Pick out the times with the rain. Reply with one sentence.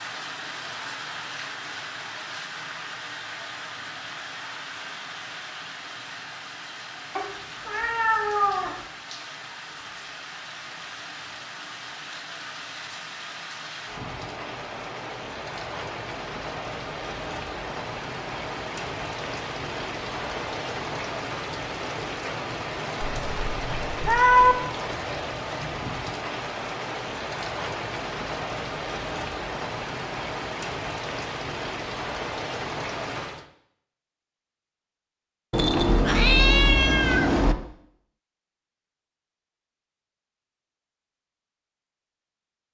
The rain can be heard from 0.0 to 33.5 s.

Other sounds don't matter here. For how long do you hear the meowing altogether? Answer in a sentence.
The meowing can be heard for 5 seconds in total.